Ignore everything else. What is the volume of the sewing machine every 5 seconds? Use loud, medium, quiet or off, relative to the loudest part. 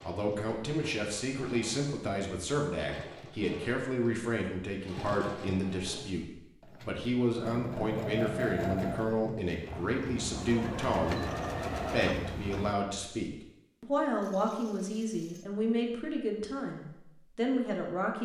medium, loud, loud, off.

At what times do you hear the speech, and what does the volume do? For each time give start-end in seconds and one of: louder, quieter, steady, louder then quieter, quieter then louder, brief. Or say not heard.
0.0-6.2 steady
6.8-18.2 steady.